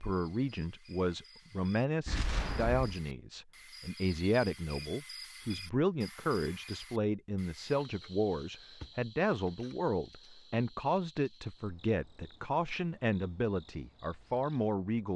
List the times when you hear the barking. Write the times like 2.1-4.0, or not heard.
not heard.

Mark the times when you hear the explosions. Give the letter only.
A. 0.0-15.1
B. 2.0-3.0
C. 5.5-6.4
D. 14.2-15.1
B.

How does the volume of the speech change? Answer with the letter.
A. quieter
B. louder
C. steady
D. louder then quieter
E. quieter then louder
C.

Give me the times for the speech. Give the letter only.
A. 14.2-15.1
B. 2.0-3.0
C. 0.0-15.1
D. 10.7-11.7
C.